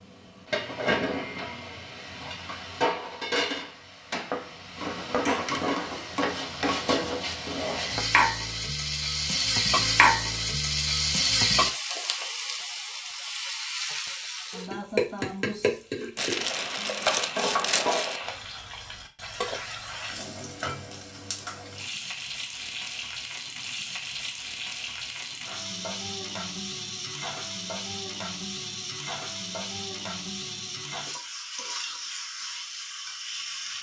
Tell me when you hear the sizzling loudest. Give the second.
10 s.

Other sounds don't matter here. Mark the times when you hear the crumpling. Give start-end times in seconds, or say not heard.
16.1-18.2.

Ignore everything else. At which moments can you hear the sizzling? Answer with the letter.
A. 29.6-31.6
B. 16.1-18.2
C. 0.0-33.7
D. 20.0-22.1
C.